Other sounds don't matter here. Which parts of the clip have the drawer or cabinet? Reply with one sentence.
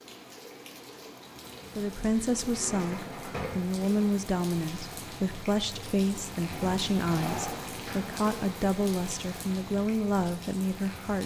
The drawer or cabinet can be heard from 2.4 to 3.8 s and from 6.5 to 8.2 s.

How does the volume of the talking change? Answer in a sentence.
The loudness of the talking stays about the same.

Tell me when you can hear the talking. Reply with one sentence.
The talking can be heard from 1.8 to 11.2 s.